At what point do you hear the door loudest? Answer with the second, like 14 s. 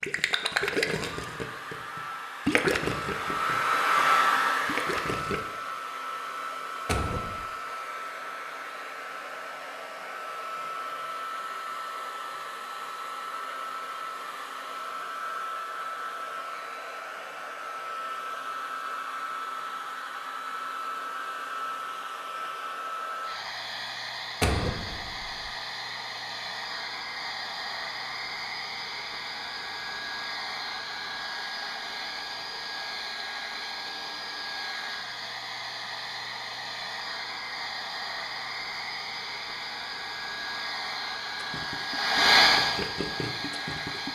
25 s.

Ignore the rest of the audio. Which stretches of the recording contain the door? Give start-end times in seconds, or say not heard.
6.8-7.5, 24.4-25.5.